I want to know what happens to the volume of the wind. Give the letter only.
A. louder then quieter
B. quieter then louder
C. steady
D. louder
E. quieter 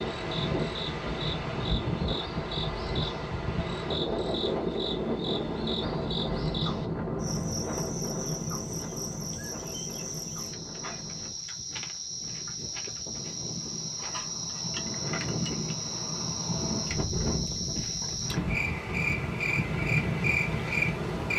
B.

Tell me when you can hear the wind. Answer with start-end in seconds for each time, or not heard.
0.0-21.3.